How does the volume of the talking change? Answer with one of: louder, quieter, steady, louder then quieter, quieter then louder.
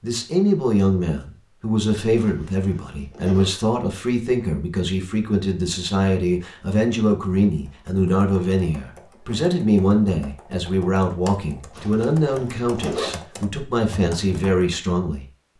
steady.